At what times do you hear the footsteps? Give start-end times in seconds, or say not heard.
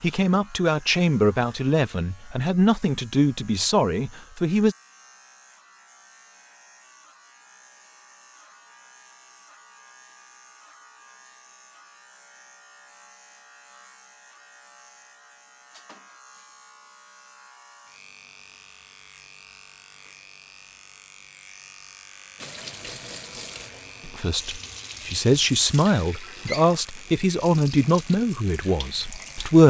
not heard.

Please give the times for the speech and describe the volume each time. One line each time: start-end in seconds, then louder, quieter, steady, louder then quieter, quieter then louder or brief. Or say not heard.
0.0-4.8 steady
24.1-29.6 quieter.